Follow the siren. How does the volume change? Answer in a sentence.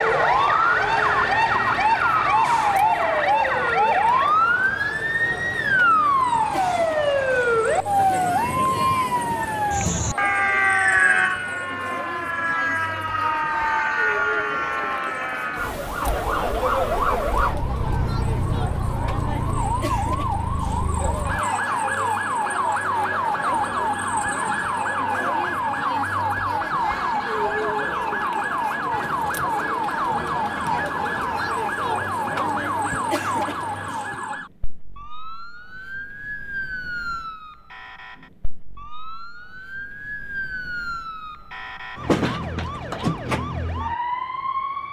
The loudness of the siren goes down.